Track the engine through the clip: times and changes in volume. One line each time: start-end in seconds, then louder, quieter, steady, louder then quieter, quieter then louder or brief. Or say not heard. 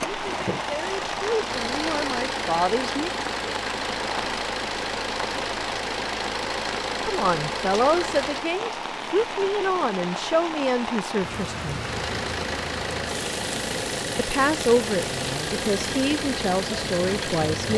0.0-8.6 steady
11.7-17.7 steady.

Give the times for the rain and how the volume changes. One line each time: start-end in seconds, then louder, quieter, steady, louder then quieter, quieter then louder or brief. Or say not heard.
0.0-17.7 steady.